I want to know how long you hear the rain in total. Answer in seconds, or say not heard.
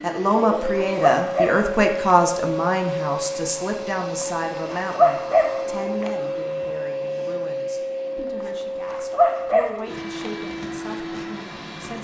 not heard.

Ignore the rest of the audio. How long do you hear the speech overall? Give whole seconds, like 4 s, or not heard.
12 s.